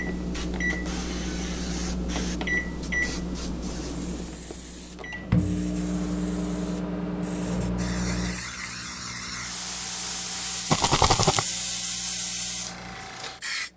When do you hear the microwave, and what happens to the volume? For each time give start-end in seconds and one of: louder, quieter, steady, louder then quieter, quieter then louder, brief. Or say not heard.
0.0-13.7 quieter.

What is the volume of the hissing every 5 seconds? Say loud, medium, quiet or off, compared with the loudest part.
medium, medium, loud.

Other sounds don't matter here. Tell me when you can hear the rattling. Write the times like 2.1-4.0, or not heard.
10.7-11.4.